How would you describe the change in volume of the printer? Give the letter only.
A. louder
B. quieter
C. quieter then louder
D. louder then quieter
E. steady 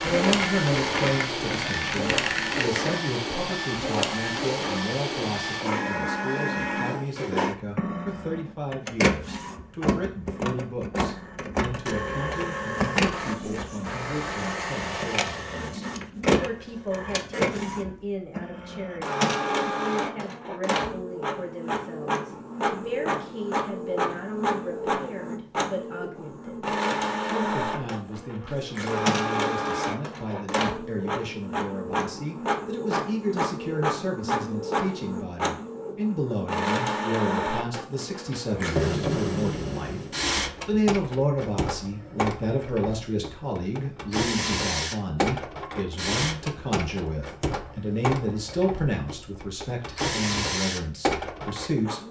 E.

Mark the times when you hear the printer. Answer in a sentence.
The printer can be heard from 0.0 to 52.0 s.